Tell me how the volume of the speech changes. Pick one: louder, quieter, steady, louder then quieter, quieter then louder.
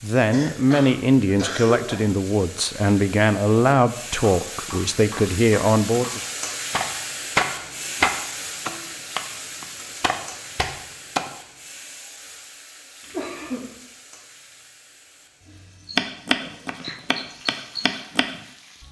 steady.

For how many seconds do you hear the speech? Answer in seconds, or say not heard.
6 s.